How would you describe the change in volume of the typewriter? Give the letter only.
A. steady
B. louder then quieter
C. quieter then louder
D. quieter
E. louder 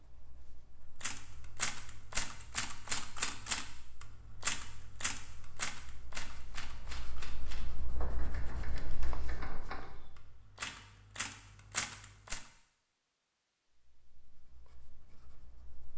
C.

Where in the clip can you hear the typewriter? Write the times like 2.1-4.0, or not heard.
1.0-12.4.